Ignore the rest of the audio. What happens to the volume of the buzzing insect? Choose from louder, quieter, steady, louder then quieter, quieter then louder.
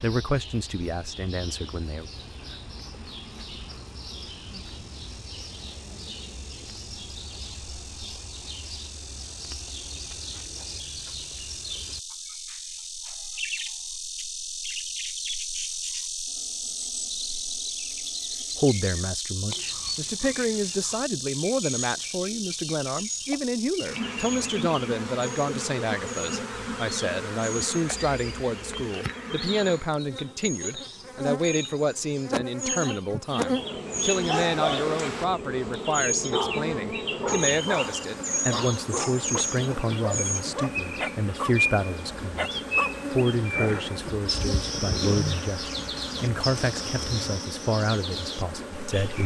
louder.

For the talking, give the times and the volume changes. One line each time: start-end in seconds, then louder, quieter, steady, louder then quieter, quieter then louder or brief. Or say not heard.
0.0-2.0 brief
18.6-49.2 steady.